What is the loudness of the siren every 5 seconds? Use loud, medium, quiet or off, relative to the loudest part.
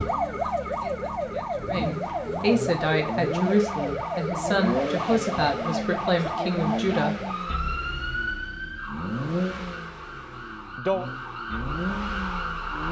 loud, loud, medium.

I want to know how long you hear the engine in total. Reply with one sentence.
You can hear the engine for 13 seconds altogether.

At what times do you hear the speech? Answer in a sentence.
You can hear the speech from 0.0 to 7.2 s.